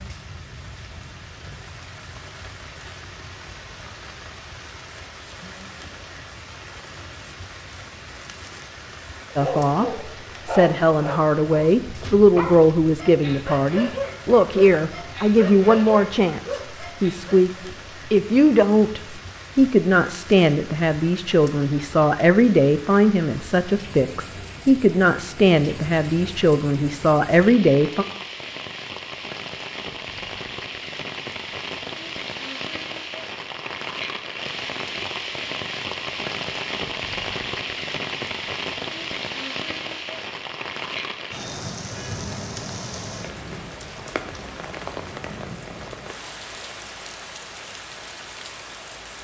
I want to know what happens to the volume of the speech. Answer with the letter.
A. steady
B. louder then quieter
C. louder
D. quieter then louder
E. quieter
A.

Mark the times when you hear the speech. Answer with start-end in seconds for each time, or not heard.
9.3-17.5, 18.1-28.1.